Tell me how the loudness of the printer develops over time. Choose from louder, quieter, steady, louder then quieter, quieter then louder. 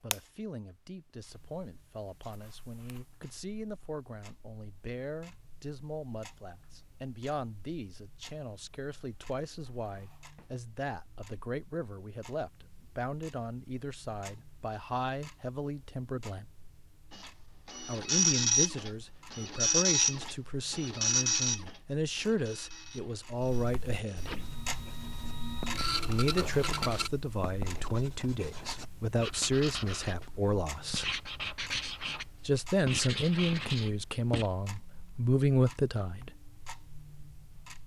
quieter then louder.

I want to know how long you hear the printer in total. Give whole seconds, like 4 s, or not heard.
10 s.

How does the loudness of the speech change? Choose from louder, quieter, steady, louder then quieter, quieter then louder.
louder.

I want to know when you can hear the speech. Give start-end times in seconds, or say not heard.
0.0-16.4, 17.9-24.3, 26.1-31.1, 32.5-36.4.